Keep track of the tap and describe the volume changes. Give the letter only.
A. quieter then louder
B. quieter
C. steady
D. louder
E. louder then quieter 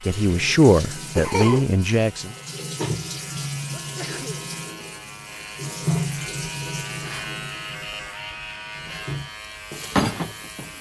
A.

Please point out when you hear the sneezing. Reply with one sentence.
The sneezing can be heard from 3.7 to 4.5 s.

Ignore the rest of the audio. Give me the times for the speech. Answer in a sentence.
You can hear the speech from 0.1 to 2.4 s.